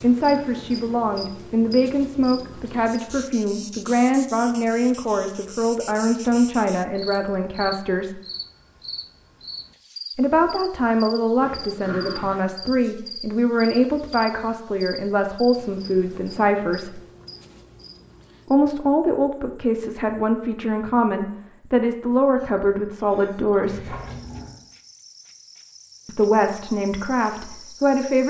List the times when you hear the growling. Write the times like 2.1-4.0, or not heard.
11.4-12.4, 23.6-24.6.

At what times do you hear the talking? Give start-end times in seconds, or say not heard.
0.0-8.2, 10.2-17.0, 18.5-23.9, 26.1-28.2.